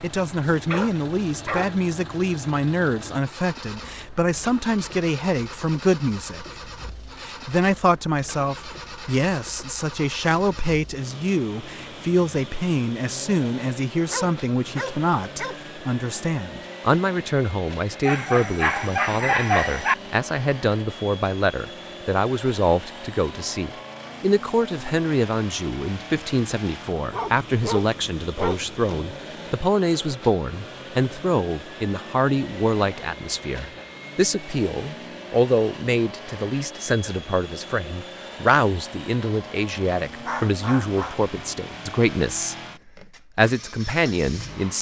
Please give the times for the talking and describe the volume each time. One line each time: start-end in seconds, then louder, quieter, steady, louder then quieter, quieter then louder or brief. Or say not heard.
0.0-6.5 steady
7.2-42.5 steady
43.4-44.7 brief.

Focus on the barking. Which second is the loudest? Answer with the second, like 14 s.
19 s.